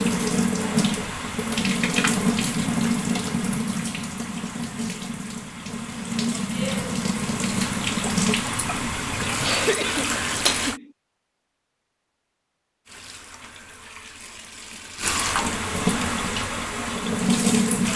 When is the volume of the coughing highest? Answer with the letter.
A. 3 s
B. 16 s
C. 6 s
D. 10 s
D.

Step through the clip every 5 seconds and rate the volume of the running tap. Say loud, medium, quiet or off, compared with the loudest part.
loud, loud, medium, loud.